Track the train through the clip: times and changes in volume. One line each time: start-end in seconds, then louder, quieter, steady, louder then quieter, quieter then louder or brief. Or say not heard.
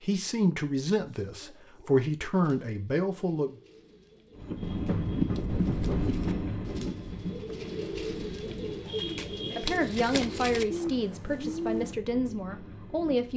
4.3-13.3 quieter.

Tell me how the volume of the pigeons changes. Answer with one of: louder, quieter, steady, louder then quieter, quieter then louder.
louder.